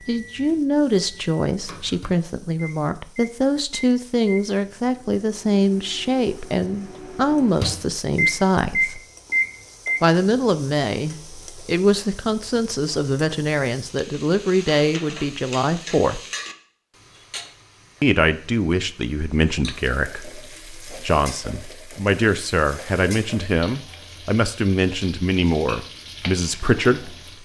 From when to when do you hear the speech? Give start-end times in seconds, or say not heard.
0.1-9.0, 10.0-16.2, 18.0-27.4.